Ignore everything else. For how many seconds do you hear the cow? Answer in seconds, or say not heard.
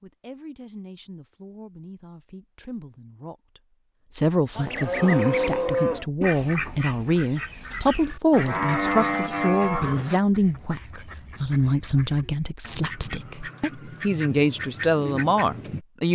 3 s.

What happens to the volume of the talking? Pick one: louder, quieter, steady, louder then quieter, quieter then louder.
louder.